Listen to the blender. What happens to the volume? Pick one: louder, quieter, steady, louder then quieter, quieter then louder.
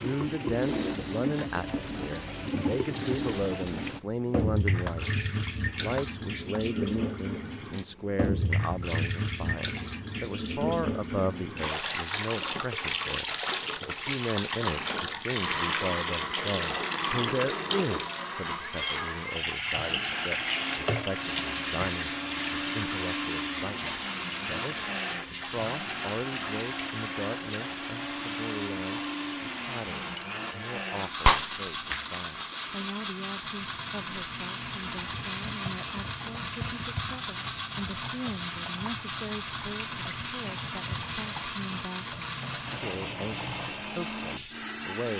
steady.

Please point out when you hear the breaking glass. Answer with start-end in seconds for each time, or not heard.
4.8-6.6, 18.7-19.2, 31.2-32.1.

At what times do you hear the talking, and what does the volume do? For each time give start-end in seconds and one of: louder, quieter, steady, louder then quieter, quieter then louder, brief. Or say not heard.
0.0-45.1 quieter.